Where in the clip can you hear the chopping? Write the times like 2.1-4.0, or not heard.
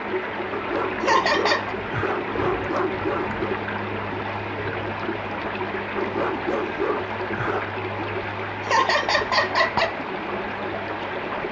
not heard.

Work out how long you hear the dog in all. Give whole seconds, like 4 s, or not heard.
5 s.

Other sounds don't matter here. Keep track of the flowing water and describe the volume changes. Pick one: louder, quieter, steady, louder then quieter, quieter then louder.
steady.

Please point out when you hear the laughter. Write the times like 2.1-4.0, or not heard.
1.0-1.8, 8.7-9.9.